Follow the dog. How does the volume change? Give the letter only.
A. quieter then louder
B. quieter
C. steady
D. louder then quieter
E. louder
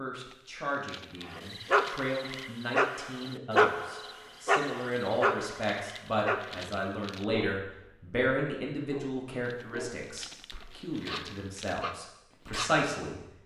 B.